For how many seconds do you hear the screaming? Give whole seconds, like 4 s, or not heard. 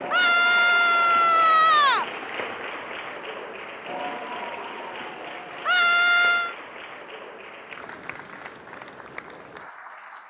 3 s.